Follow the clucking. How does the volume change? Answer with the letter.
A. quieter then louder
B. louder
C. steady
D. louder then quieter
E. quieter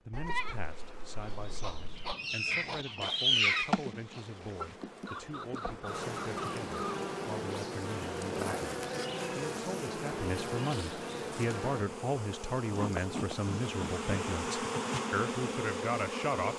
D.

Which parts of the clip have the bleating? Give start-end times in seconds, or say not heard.
0.1-2.1.